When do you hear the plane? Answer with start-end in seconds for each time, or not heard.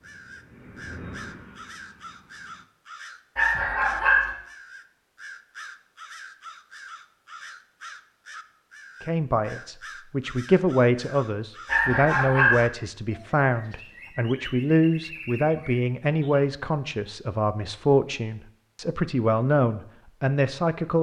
0.0-2.6.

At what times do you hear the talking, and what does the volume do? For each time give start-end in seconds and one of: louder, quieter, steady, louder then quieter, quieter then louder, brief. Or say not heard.
9.0-20.9 steady.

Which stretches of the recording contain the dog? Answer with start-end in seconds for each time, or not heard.
3.4-4.3, 11.7-12.7.